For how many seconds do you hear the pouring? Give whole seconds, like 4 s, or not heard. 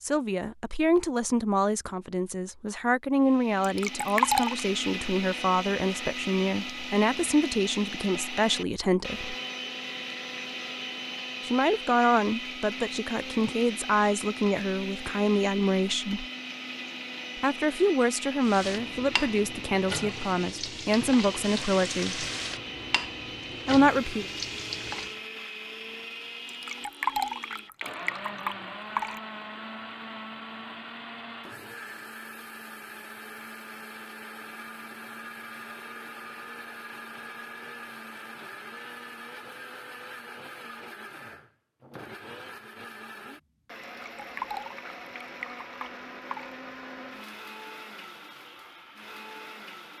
6 s.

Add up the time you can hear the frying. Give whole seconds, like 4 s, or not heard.
7 s.